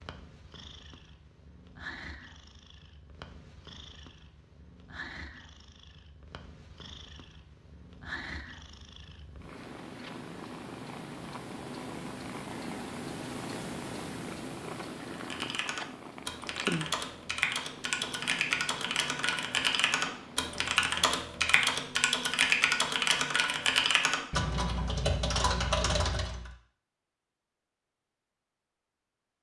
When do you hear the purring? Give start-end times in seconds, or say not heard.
0.0-21.1.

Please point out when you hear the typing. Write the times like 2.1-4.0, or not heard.
15.1-26.5.